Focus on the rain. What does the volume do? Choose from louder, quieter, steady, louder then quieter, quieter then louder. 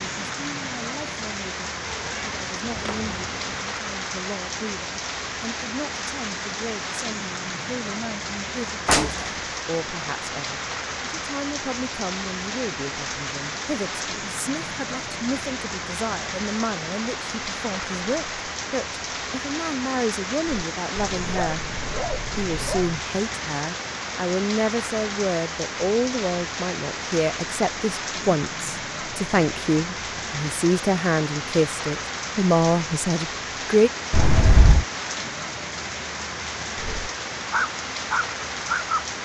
steady.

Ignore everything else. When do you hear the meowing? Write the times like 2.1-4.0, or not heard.
1.9-3.6, 34.1-34.9.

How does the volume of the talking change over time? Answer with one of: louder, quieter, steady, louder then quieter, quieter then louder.
louder.